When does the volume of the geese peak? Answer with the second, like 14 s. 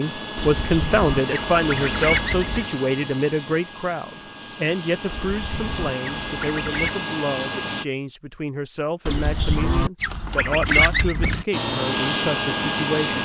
11 s.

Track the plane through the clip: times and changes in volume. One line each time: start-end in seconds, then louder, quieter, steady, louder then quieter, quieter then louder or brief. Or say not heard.
0.0-7.8 quieter then louder
11.5-13.2 brief.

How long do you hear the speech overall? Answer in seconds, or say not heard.
13 s.